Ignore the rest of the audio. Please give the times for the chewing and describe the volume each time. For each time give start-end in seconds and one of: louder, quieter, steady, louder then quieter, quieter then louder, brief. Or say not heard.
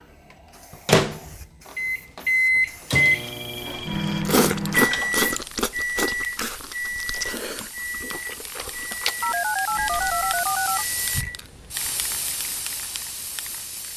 3.6-10.4 quieter then louder.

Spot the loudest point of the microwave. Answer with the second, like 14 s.
3 s.